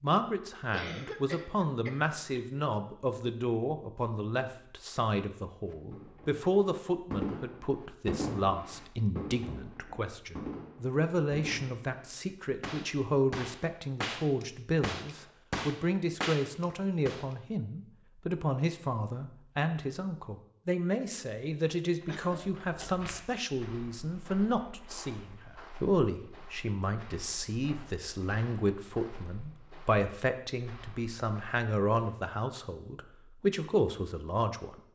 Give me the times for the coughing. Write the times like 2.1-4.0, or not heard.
0.7-2.6, 22.1-22.9.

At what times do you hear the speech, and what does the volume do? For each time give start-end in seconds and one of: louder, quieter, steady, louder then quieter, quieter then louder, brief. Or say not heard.
0.0-34.8 steady.